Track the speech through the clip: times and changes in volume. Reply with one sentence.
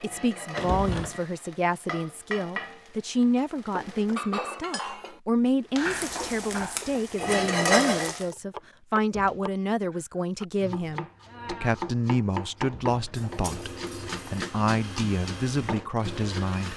The speech can be heard from 0.0 to 16.7 s, at a steady volume.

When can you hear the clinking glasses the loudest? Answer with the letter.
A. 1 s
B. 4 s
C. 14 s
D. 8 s
B.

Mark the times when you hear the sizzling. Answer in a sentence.
You can hear the sizzling from 0.0 to 4.2 s and from 5.6 to 8.2 s.